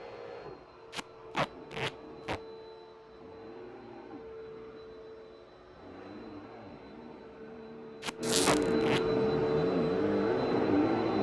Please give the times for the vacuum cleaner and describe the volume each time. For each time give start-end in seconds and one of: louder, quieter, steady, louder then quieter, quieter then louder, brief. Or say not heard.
0.0-11.1 louder.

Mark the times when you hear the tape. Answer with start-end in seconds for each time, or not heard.
0.9-2.4, 8.0-9.0.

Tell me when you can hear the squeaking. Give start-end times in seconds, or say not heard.
8.2-8.7.